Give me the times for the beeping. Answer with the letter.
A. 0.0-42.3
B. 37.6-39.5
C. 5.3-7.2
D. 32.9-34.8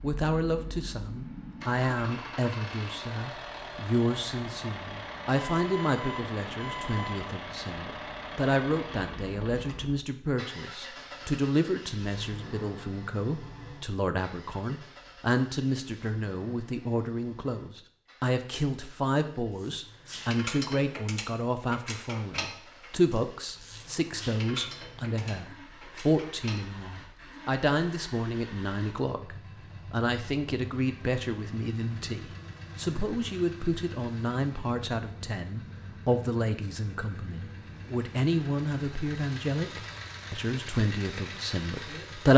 C.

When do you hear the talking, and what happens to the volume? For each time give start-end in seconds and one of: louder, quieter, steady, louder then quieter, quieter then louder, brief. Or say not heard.
0.0-42.3 steady.